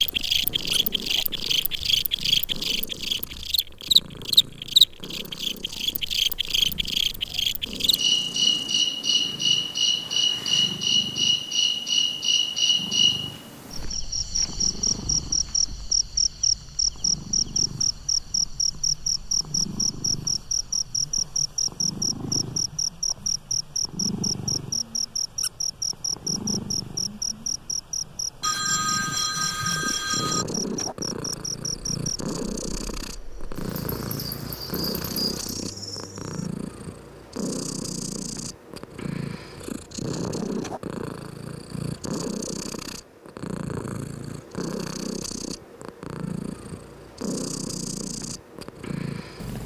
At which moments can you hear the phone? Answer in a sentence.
The phone can be heard from 28.4 to 30.4 s.